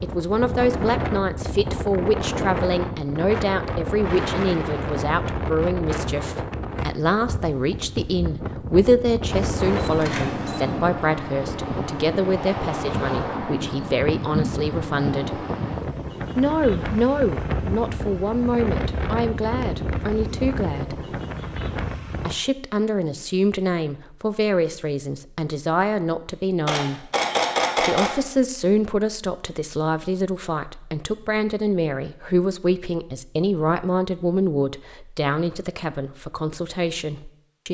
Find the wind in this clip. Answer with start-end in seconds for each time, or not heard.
0.0-22.4.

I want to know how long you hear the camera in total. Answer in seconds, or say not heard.
3 s.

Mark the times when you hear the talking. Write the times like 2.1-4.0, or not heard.
0.0-15.4, 16.4-20.9, 22.2-27.1, 27.8-37.6.